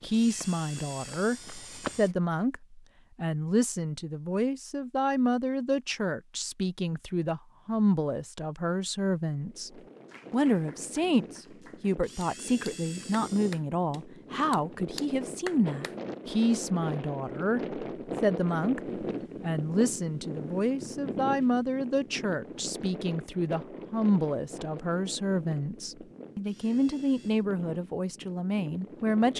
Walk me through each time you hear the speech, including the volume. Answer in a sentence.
You can hear the speech from 0.0 to 29.3 s, at a steady volume.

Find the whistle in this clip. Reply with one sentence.
You can't hear the whistle here.